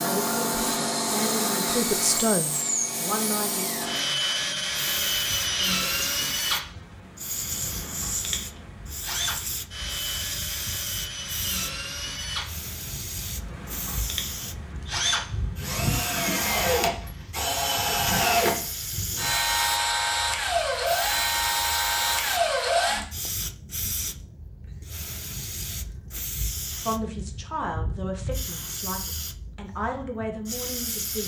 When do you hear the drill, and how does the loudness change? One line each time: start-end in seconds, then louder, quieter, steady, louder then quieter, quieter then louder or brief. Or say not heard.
0.0-23.1 quieter then louder.